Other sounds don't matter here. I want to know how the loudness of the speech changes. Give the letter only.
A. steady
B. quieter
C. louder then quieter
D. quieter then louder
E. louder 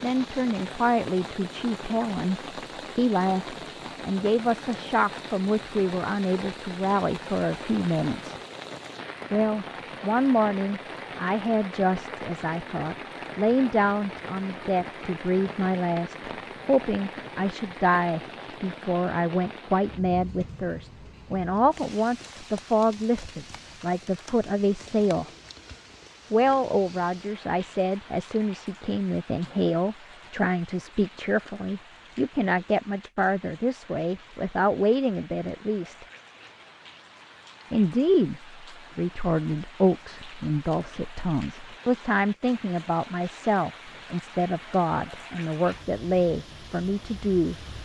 A.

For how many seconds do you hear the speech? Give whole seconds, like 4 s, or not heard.
44 s.